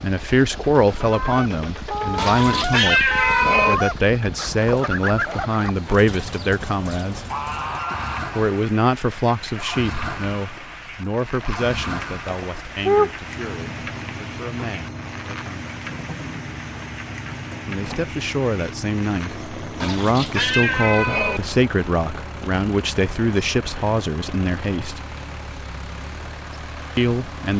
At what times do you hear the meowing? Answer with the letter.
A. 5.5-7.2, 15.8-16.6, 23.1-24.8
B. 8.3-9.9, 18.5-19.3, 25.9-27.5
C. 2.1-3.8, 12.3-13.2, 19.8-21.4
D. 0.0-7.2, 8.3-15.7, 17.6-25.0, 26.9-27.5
C.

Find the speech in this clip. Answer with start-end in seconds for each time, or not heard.
0.0-7.2, 8.3-15.7, 17.6-25.0, 26.9-27.5.